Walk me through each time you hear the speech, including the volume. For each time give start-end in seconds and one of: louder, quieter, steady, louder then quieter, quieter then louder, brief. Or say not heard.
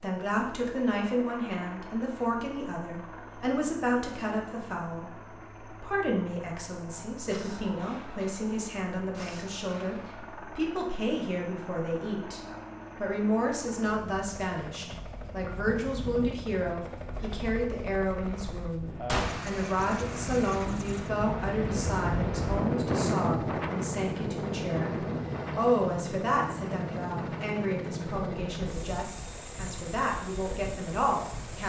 0.0-31.6 steady.